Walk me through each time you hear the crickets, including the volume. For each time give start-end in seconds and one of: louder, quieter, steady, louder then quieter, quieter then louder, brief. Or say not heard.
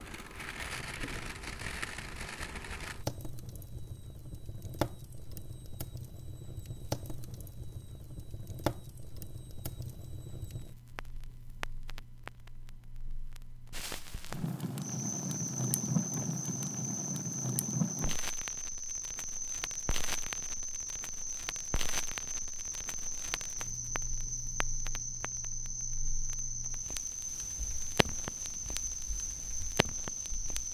14.8-30.7 steady.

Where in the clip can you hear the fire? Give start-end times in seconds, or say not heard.
0.0-30.7.